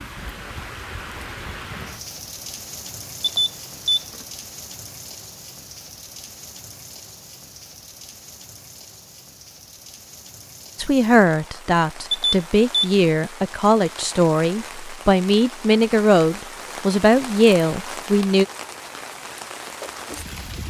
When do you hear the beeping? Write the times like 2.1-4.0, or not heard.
3.2-4.2, 12.1-13.1.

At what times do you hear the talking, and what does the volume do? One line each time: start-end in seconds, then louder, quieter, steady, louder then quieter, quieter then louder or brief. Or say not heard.
10.8-18.4 steady.